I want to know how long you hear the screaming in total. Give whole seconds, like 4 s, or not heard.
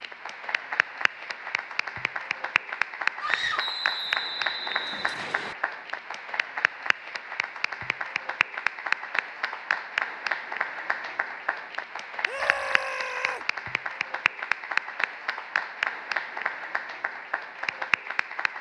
2 s.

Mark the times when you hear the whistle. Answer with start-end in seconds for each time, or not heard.
3.5-5.5.